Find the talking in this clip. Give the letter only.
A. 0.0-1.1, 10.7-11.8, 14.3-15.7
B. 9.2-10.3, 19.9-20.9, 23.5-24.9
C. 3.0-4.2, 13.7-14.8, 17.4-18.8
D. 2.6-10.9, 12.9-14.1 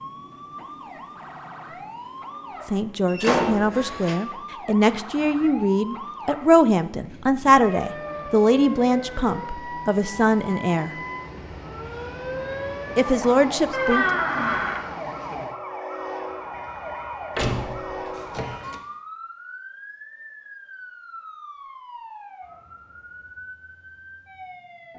D.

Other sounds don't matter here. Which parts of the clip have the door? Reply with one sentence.
You can hear the door from 3.0 to 4.2 s, from 13.7 to 14.8 s and from 17.4 to 18.8 s.